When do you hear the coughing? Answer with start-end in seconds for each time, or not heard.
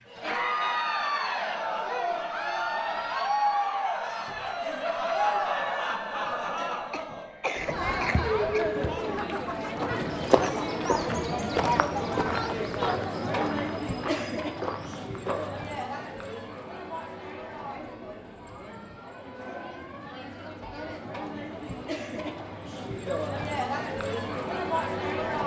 6.9-8.7.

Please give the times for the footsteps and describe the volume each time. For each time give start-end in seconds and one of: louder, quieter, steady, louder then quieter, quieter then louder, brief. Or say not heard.
8.1-15.6 louder then quieter.